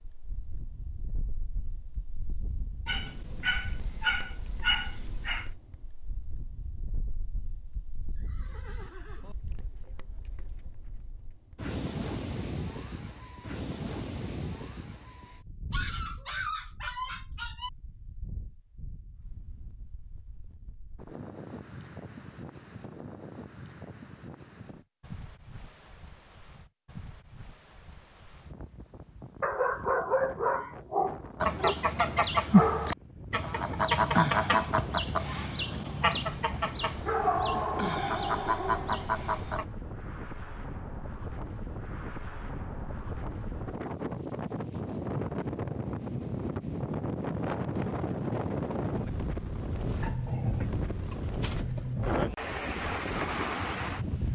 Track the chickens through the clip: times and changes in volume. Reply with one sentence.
You can hear the chickens from 31.4 to 39.6 s, getting quieter.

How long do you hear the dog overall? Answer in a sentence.
The dog can be heard for 9 seconds in total.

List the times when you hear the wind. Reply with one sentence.
The wind can be heard from 0.0 to 54.2 s.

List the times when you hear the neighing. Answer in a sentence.
You can hear the neighing from 8.2 to 9.3 s.